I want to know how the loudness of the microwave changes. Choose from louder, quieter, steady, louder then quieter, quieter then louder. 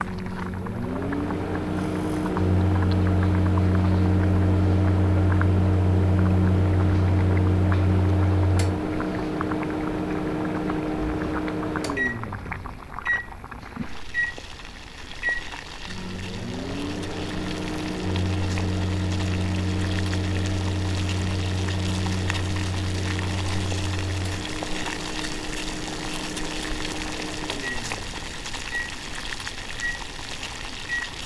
quieter.